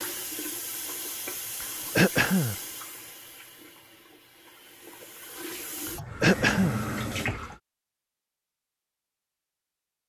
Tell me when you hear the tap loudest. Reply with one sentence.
The loudest moment of the tap is at 7 seconds.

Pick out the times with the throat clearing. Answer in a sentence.
You can hear the throat clearing from 1.9 to 2.5 s and from 6.2 to 6.8 s.